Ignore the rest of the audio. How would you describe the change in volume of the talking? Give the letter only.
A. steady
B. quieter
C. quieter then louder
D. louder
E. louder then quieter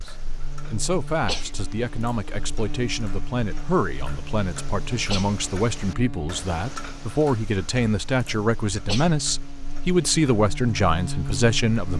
D.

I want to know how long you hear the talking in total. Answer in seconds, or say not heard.
12 s.